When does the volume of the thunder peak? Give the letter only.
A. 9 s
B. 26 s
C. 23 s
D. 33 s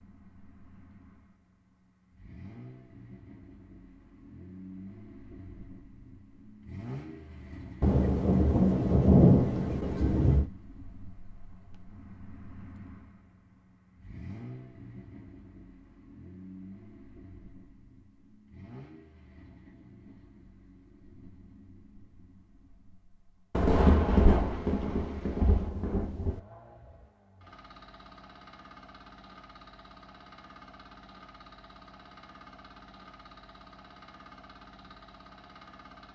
A.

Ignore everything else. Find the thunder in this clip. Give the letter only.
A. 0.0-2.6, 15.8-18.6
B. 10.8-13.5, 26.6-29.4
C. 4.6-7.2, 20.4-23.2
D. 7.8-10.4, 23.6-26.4
D.